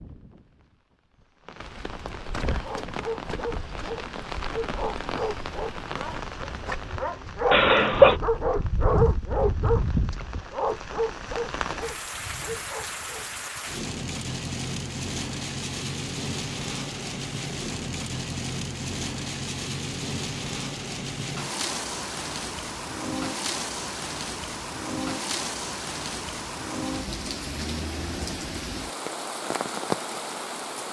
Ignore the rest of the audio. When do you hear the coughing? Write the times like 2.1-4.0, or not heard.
7.5-8.2.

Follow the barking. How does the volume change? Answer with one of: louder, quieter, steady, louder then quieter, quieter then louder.
louder then quieter.